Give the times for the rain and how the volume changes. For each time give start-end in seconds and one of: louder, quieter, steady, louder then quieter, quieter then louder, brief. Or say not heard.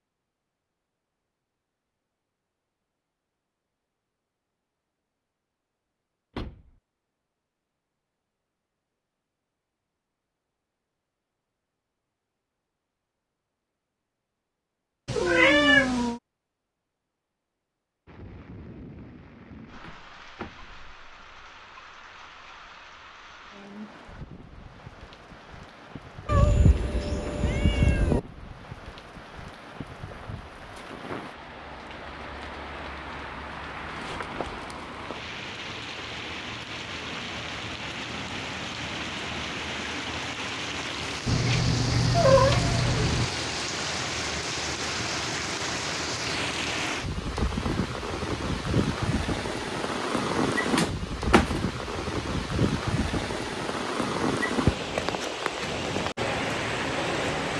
18.1-57.5 louder.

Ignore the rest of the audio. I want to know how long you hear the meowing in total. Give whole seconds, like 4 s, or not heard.
5 s.